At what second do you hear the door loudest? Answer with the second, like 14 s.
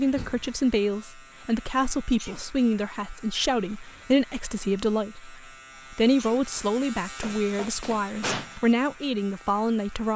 8 s.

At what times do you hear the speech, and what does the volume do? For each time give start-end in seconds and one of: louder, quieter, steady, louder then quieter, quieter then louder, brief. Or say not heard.
0.0-10.1 steady.